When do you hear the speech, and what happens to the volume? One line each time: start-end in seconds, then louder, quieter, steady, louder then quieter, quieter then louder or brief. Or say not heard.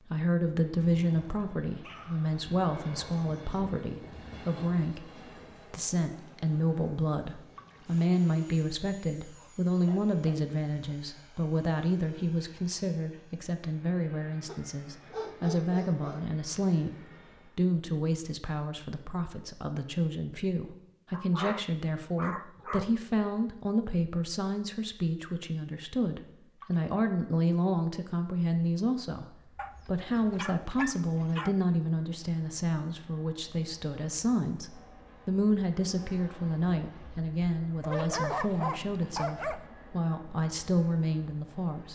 0.1-41.9 steady.